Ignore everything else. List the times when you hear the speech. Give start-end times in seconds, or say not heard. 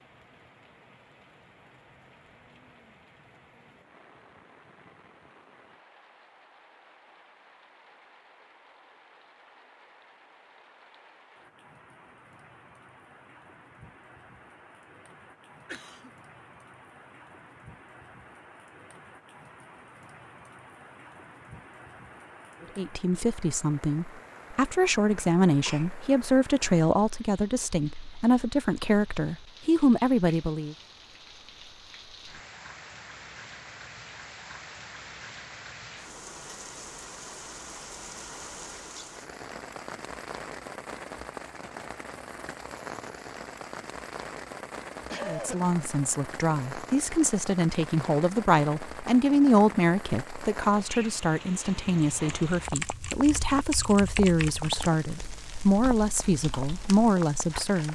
22.8-30.8, 45.2-57.9.